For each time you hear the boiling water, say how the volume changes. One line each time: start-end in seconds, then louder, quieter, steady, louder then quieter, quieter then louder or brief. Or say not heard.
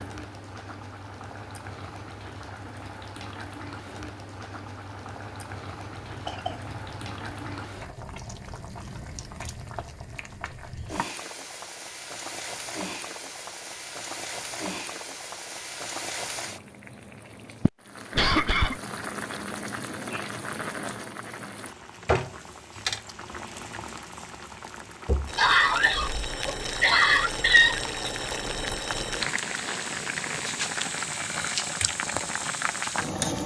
0.0-33.4 louder.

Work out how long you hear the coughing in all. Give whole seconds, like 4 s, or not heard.
5 s.